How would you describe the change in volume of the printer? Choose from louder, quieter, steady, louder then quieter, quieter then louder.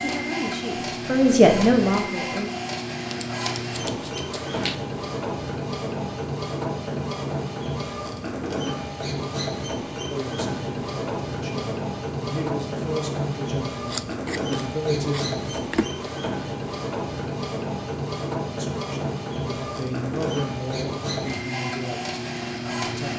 steady.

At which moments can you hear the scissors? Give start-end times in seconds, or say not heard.
3.0-4.8, 13.8-15.9.